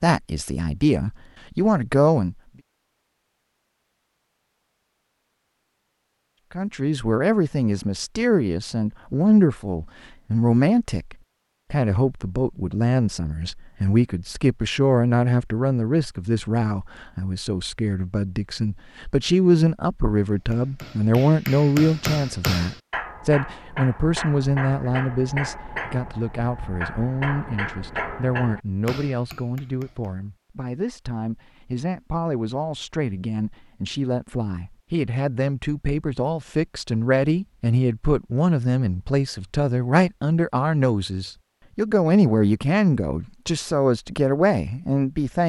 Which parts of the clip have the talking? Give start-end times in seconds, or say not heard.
0.0-2.4, 6.5-45.4.